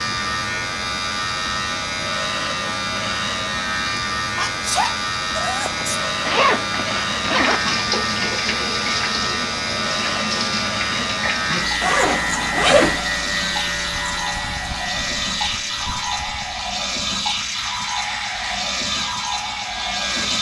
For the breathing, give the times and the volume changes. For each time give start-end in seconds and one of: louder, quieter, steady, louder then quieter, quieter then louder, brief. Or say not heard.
not heard.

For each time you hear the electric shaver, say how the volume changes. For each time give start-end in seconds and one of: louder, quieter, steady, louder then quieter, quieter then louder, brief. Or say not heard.
0.0-20.3 quieter.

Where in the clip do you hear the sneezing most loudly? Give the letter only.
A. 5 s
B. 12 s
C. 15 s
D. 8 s
A.